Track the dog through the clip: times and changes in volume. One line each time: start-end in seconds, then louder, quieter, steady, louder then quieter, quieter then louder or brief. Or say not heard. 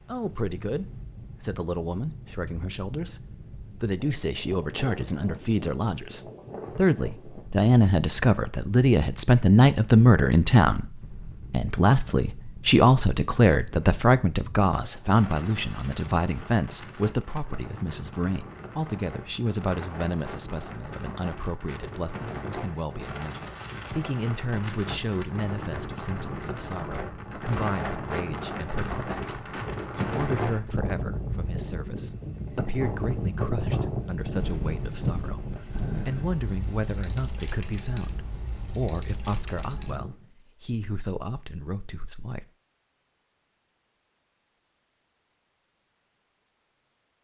not heard.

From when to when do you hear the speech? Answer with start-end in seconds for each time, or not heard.
0.1-42.5.